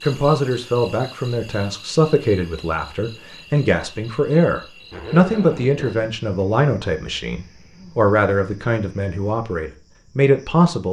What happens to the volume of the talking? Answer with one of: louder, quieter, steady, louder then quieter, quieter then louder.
steady.